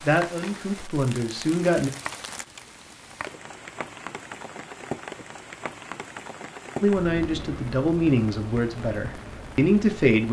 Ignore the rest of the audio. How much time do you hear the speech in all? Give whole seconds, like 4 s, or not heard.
5 s.